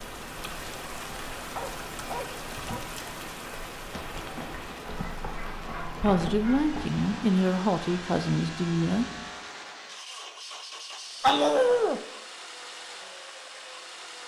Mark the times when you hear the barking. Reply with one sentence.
You can hear the barking from 1.6 to 2.9 s, from 4.8 to 6.8 s and from 11.2 to 12.1 s.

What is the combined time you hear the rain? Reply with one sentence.
The rain can be heard for 9 seconds in total.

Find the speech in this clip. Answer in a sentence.
You can hear the speech from 6.0 to 9.1 s.